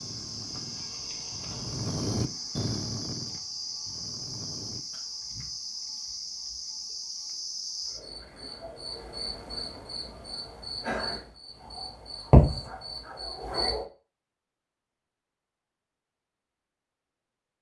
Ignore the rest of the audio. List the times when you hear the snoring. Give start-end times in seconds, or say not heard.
0.0-5.2.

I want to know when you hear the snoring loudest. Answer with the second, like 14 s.
2 s.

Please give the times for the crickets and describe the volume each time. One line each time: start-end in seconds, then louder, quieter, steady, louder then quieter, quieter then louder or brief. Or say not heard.
0.0-13.8 louder.